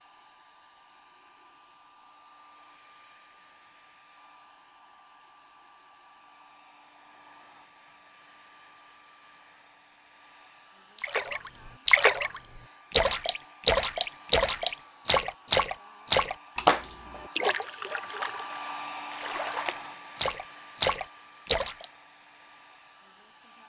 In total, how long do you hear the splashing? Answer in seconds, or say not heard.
11 s.